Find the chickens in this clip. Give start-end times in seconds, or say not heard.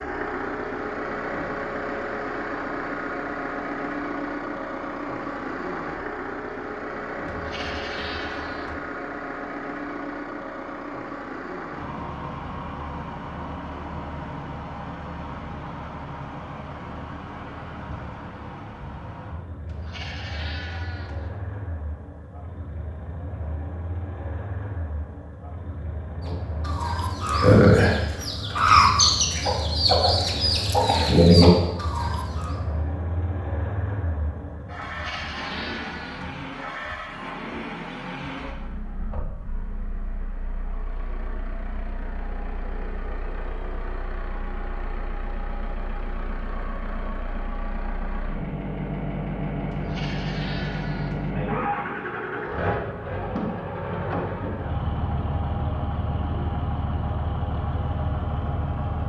26.2-32.5.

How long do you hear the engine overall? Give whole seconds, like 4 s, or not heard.
59 s.